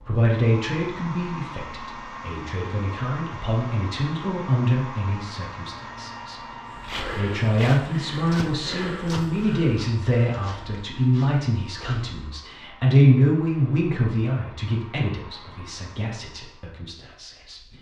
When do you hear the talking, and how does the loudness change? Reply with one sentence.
You can hear the talking from 0.0 to 17.7 s, getting louder then quieter.